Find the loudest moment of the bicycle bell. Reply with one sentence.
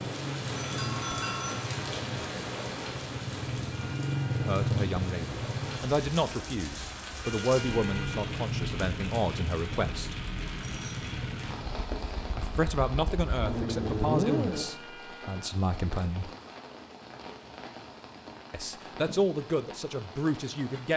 The loudest moment of the bicycle bell is at 1 second.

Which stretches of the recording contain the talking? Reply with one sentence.
The talking can be heard from 4.3 to 10.2 s, from 12.3 to 16.3 s and from 18.5 to 20.9 s.